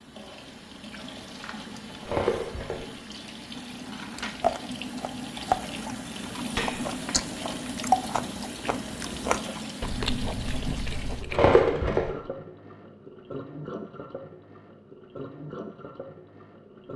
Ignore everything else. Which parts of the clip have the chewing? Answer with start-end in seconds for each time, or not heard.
4.2-11.6.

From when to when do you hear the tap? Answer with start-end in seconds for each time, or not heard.
0.0-16.9.